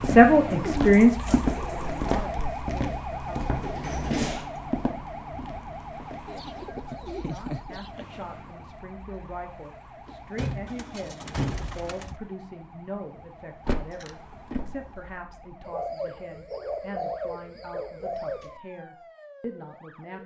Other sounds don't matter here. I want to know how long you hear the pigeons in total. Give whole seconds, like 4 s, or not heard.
8 s.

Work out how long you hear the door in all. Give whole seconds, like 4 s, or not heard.
4 s.